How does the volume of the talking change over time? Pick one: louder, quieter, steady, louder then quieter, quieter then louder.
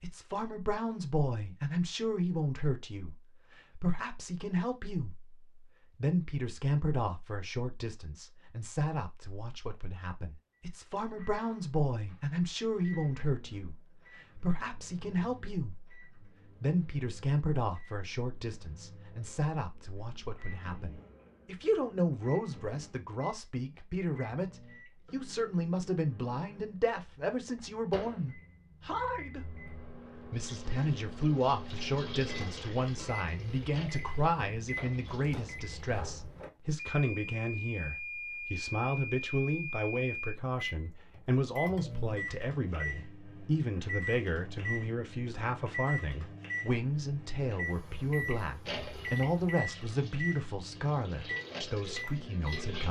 steady.